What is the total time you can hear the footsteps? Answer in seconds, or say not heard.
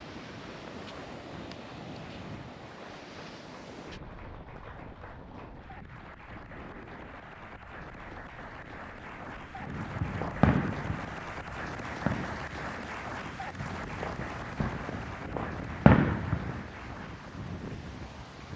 not heard.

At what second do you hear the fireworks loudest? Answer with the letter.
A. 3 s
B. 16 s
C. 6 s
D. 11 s
B.